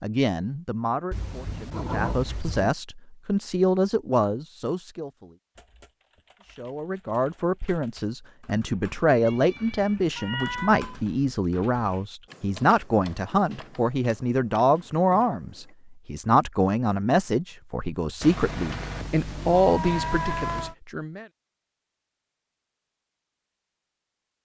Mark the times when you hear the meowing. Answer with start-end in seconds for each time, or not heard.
1.1-2.8, 9.2-11.1, 18.2-20.8.